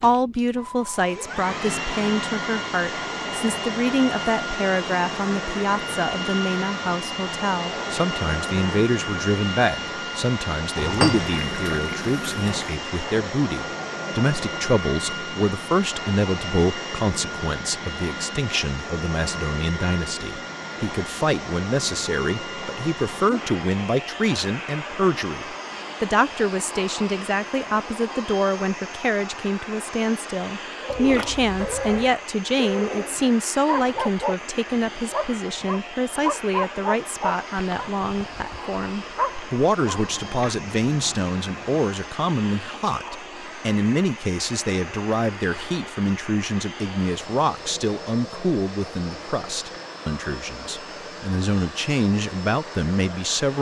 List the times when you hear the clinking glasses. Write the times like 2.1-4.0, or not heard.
not heard.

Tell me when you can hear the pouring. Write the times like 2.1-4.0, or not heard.
10.8-12.7, 30.9-32.1, 39.9-41.9.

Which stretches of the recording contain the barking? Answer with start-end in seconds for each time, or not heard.
30.8-40.5.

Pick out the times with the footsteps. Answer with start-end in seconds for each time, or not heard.
not heard.